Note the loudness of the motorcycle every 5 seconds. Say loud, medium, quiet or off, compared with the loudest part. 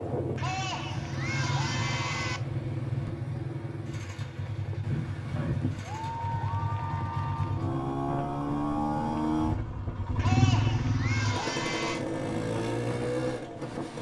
medium, loud, loud.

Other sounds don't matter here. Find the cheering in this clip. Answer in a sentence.
You can hear the cheering from 0.3 to 2.4 s, from 5.3 to 7.7 s and from 10.2 to 12.1 s.